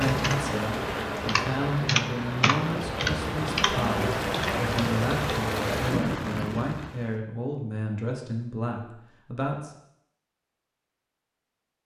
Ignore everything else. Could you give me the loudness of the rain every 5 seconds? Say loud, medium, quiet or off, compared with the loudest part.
loud, loud, off.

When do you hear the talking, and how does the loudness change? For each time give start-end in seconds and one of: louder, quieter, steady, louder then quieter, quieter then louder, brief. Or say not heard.
0.0-9.7 steady.